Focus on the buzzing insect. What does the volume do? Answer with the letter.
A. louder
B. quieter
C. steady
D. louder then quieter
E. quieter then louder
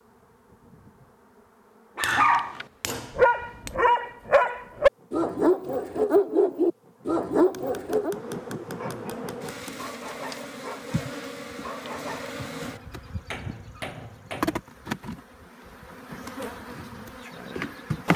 A.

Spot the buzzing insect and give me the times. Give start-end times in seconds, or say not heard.
0.0-18.1.